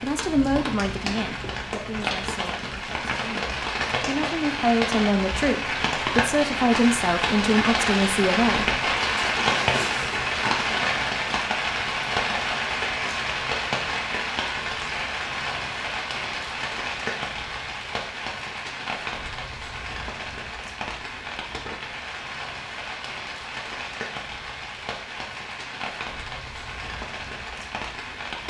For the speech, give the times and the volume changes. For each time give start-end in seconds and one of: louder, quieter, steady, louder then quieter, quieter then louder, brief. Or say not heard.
0.0-8.8 quieter then louder.